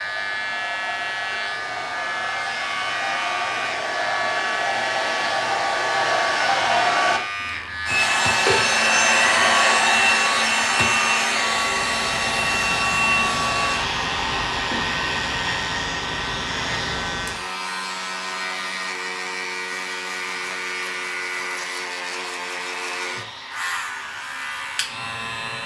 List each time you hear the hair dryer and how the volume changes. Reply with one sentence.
You can hear the hair dryer from 0.0 to 25.6 s, getting louder then quieter.